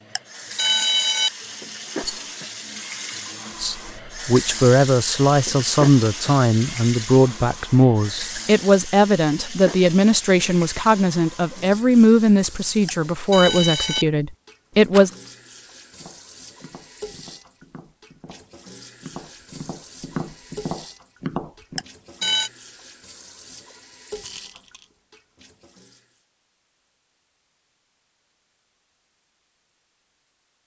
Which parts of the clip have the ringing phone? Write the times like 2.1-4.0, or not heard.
0.1-1.3, 12.8-14.1, 21.8-22.5.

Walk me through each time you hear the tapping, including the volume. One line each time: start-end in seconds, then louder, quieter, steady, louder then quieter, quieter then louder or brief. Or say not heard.
16.0-21.9 louder.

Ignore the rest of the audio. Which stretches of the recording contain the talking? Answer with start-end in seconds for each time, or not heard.
3.6-15.1.